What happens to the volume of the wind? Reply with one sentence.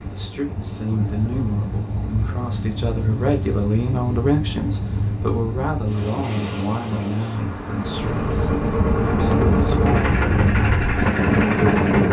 The loudness of the wind goes up.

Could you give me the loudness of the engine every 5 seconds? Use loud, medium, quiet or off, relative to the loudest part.
off, loud, loud.